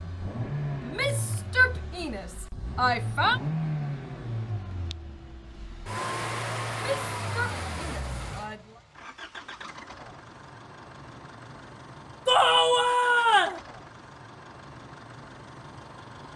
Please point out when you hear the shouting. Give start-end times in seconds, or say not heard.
0.8-3.4, 6.8-8.8, 12.2-13.6.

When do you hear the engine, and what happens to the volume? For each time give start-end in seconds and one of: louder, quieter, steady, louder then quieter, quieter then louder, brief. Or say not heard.
0.0-16.3 quieter.